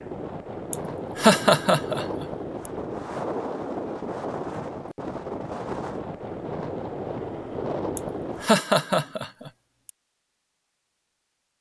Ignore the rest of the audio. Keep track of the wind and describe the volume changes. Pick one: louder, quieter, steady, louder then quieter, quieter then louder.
steady.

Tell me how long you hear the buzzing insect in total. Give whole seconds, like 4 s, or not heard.
not heard.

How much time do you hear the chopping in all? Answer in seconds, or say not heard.
not heard.